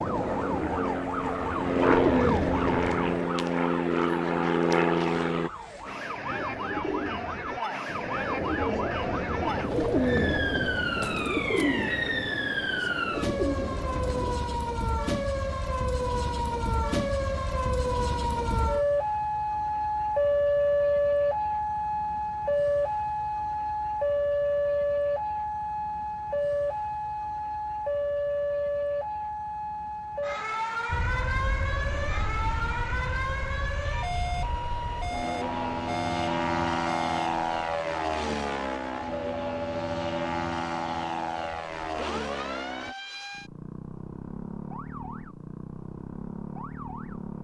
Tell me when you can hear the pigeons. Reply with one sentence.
You can hear the pigeons from 0.0 to 3.4 s and from 6.0 to 14.5 s.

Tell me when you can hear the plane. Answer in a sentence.
The plane can be heard from 0.0 to 5.5 s and from 30.9 to 43.0 s.